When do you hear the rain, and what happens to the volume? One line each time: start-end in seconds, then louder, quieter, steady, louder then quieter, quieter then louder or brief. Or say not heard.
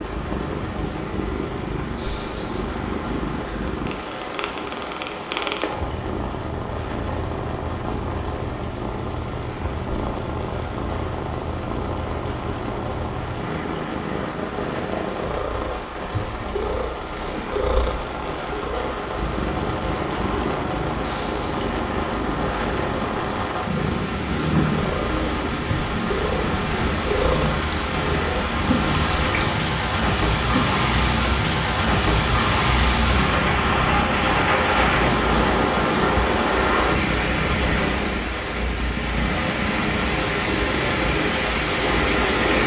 0.0-42.6 louder.